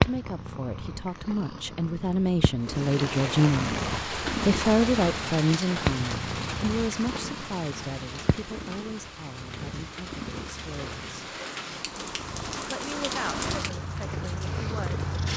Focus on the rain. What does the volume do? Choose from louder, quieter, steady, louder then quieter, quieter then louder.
quieter then louder.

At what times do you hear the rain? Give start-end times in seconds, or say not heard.
2.6-15.3.